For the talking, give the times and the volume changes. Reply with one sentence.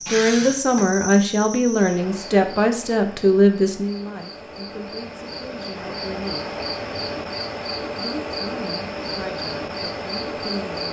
You can hear the talking from 0.1 to 6.5 s, getting quieter; and briefly from 8.0 to 10.8 s.